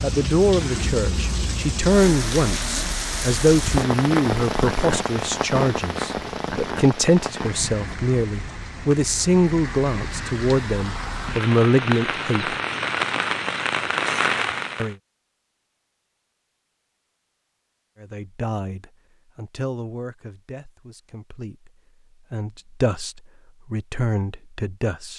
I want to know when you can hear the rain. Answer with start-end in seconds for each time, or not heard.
0.0-14.9.